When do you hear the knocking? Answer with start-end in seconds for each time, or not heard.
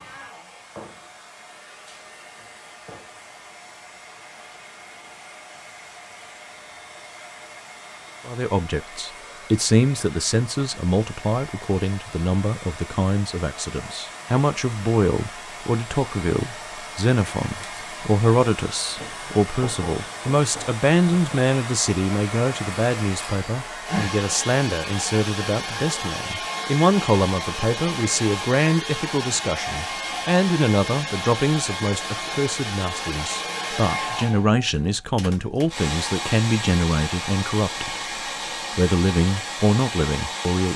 not heard.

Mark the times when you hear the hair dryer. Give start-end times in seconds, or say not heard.
0.0-40.7.